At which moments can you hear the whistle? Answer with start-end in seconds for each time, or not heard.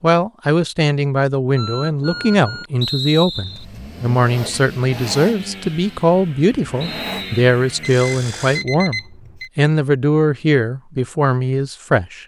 2.8-3.6, 6.8-7.5.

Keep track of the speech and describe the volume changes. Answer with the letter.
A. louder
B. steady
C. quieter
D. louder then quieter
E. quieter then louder
B.